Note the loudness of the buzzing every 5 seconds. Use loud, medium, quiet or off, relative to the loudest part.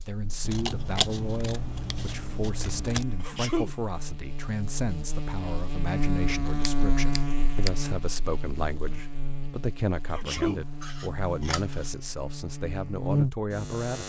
medium, loud, loud.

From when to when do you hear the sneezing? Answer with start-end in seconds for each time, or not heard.
3.2-3.8, 10.1-10.7.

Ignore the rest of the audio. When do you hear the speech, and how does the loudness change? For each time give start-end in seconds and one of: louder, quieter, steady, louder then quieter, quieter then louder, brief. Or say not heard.
0.0-14.0 steady.